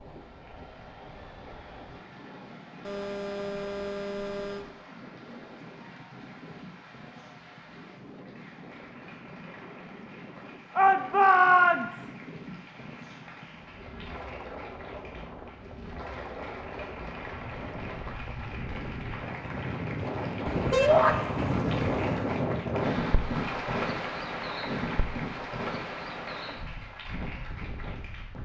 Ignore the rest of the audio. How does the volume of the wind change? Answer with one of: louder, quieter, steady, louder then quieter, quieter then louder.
louder.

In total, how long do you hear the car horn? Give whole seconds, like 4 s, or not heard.
4 s.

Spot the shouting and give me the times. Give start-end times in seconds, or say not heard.
10.8-12.1, 20.7-21.1.